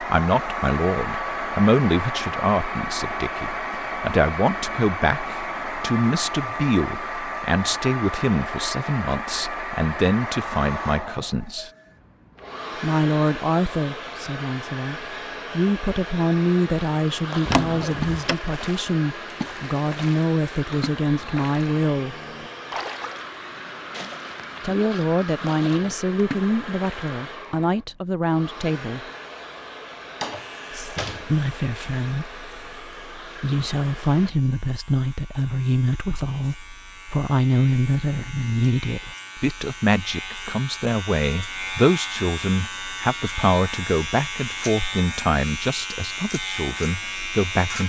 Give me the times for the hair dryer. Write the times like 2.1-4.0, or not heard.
0.0-34.3.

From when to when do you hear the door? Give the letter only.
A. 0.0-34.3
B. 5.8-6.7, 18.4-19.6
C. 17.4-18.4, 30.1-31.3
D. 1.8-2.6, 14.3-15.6
C.